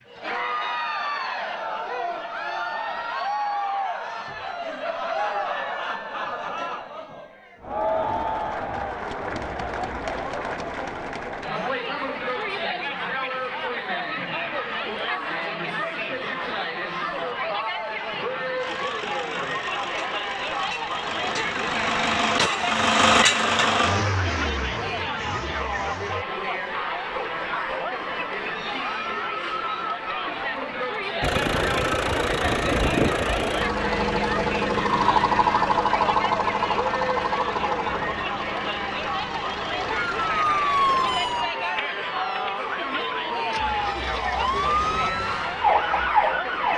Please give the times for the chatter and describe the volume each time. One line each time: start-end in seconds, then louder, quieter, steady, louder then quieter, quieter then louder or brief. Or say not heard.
0.1-46.7 steady.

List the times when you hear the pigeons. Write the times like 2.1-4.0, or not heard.
not heard.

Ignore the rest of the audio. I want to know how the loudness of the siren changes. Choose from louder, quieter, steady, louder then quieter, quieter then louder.
quieter then louder.